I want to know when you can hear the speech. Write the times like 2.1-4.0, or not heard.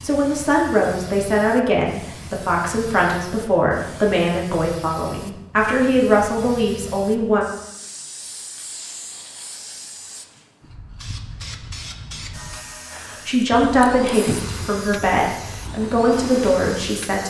0.0-7.5, 12.9-17.2.